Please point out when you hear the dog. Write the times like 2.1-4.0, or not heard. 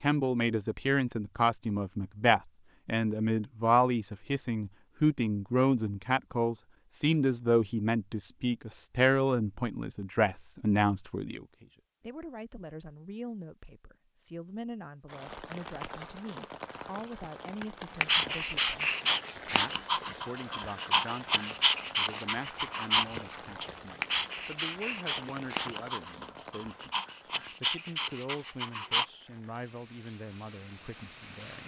18.0-29.1.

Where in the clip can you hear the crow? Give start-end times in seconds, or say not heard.
not heard.